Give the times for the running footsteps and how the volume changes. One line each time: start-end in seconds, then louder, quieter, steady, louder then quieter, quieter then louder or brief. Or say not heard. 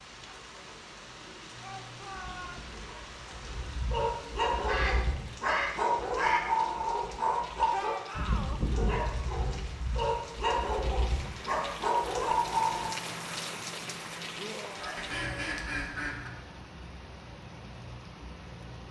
not heard.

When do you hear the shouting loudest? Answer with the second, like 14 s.
8 s.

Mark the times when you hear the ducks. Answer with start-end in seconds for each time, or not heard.
4.7-6.5, 14.8-16.3.